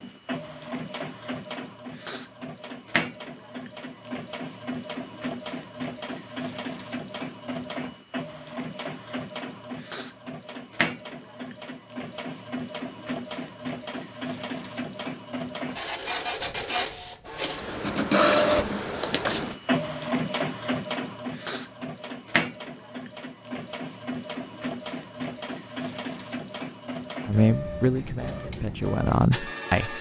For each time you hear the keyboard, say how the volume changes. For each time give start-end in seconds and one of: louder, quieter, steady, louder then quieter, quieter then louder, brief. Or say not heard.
not heard.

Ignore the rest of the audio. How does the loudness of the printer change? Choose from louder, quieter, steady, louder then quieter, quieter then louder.
louder then quieter.